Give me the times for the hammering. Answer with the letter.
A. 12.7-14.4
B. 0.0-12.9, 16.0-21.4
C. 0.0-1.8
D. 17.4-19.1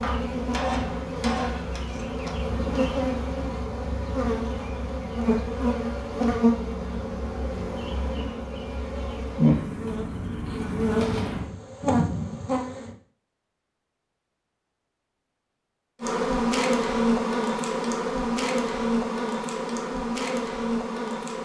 C.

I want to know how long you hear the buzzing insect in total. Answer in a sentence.
You can hear the buzzing insect for 18 seconds altogether.